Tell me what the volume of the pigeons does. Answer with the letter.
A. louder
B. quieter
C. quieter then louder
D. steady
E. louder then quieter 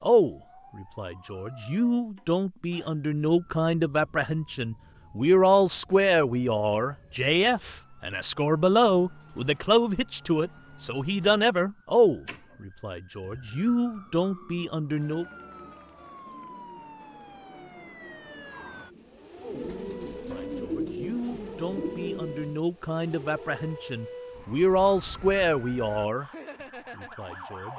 A.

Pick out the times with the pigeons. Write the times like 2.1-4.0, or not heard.
14.2-22.6.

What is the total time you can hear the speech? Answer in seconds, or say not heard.
23 s.